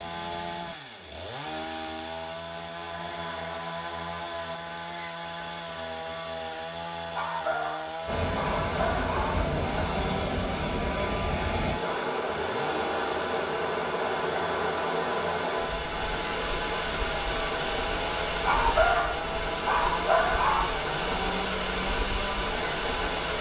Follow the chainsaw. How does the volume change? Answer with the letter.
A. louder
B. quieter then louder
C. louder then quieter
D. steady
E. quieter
D.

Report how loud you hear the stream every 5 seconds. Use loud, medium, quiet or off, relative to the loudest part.
off, loud, loud, loud, loud.